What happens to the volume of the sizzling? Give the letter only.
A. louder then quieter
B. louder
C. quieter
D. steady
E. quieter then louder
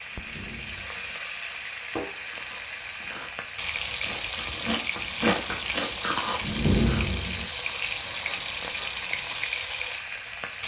D.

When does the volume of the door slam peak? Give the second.
7 s.